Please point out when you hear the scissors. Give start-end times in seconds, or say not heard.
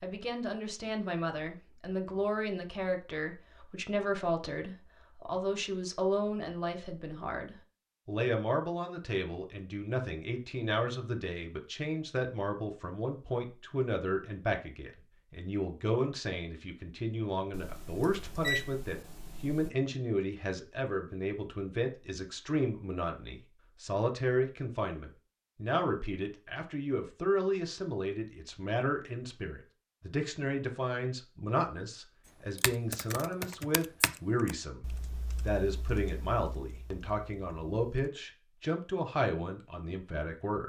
not heard.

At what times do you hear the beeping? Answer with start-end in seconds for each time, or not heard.
17.5-19.7.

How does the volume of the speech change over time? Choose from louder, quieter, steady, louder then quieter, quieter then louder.
steady.